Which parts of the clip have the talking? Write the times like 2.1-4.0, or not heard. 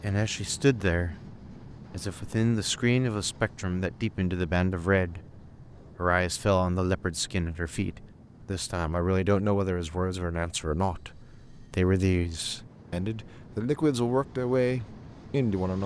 0.0-5.2, 6.0-15.8.